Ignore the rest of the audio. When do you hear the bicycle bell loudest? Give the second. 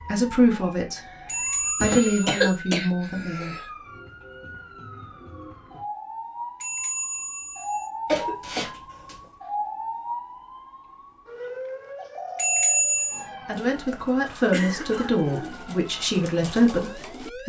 13 s.